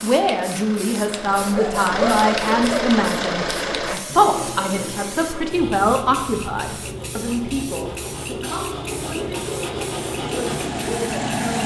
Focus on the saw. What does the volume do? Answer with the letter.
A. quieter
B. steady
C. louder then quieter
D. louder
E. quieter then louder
E.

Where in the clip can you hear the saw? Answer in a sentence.
The saw can be heard from 1.1 to 11.2 s.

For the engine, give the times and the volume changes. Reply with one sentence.
You can hear the engine from 0.0 to 4.0 s, getting louder; and briefly from 8.9 to 11.6 s.